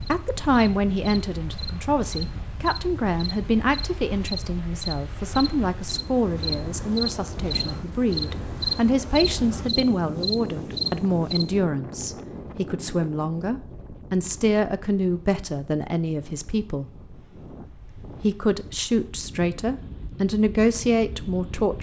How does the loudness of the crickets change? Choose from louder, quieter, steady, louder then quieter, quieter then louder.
louder.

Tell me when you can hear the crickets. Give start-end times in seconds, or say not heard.
0.0-11.4.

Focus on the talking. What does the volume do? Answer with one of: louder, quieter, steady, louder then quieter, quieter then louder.
steady.